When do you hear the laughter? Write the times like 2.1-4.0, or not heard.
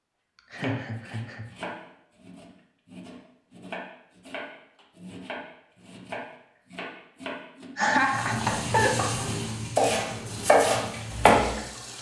0.5-1.4, 7.8-9.0.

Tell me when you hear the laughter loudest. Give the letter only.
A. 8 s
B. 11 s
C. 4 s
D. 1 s
A.